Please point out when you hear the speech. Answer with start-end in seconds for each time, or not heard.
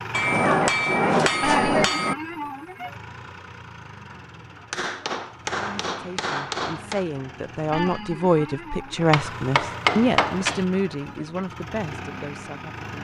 5.5-13.0.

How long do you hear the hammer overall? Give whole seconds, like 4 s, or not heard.
6 s.